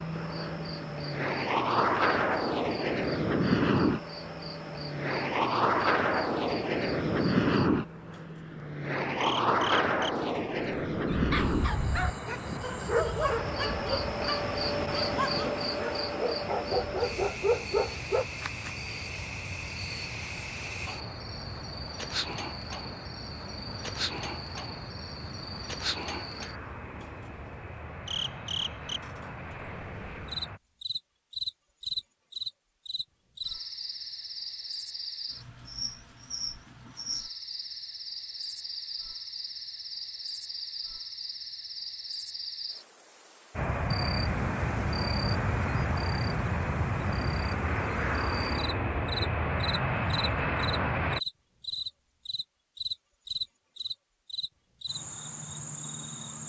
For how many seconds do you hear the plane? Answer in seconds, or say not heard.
38 s.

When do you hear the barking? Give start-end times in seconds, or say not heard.
11.1-18.2.